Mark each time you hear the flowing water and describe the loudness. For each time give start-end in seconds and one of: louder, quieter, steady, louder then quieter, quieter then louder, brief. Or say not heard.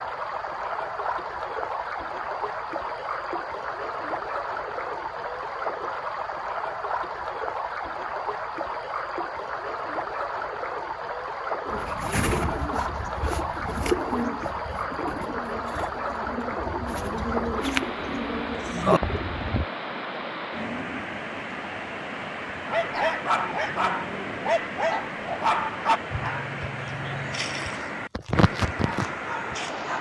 0.0-29.9 steady.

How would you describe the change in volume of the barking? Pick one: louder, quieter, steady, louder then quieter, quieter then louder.
quieter then louder.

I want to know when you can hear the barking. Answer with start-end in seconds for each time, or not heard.
22.6-29.9.